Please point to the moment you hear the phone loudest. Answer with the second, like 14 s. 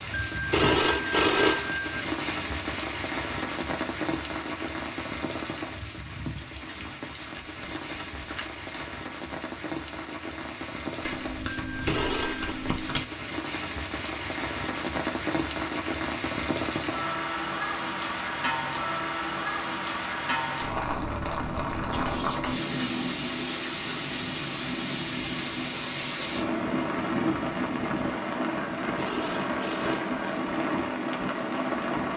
1 s.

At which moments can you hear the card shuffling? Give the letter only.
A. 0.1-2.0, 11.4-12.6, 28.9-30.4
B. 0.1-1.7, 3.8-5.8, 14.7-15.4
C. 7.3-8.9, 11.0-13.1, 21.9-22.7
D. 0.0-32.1
C.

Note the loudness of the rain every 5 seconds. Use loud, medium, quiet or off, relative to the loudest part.
loud, medium, medium, loud, loud, loud, loud.